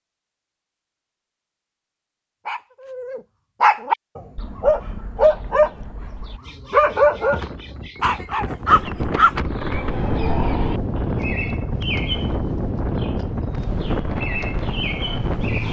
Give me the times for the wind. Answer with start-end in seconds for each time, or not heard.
6.8-15.6.